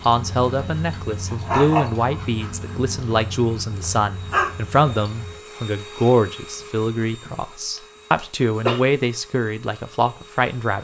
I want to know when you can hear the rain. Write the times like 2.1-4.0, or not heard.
not heard.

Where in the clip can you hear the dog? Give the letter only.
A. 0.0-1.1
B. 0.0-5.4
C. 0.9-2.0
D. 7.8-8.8
B.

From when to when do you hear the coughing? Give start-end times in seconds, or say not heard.
7.8-8.8.